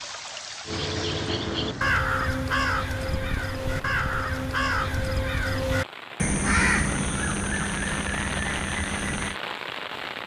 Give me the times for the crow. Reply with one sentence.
You can hear the crow from 0.7 to 9.3 s.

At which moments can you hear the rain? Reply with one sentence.
The rain can be heard from 0.0 to 10.2 s.